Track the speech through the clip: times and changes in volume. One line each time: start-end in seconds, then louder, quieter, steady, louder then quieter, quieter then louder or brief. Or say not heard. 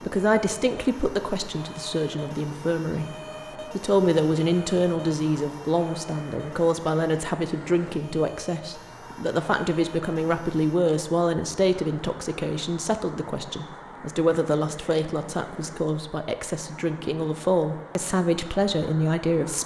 0.0-19.6 steady.